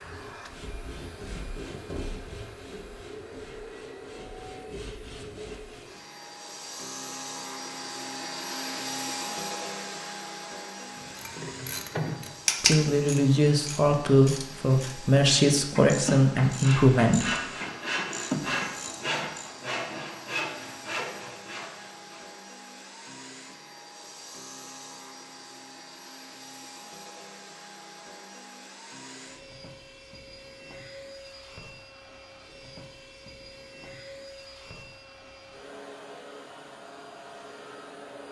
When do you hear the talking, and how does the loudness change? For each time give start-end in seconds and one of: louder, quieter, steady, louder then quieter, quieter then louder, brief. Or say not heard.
12.6-17.4 steady.